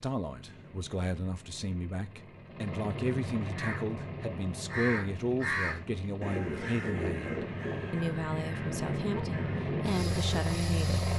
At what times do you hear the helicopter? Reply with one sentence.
You can hear the helicopter from 0.0 to 11.1 s.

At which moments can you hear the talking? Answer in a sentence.
The talking can be heard from 0.0 to 11.1 s.